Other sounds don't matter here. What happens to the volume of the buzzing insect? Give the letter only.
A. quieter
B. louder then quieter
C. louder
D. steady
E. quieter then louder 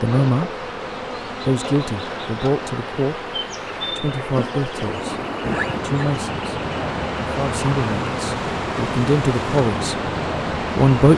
D.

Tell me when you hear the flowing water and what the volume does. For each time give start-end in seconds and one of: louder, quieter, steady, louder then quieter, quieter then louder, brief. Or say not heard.
0.2-11.1 louder.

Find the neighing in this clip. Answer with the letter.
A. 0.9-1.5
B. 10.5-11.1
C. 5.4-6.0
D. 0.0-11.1
C.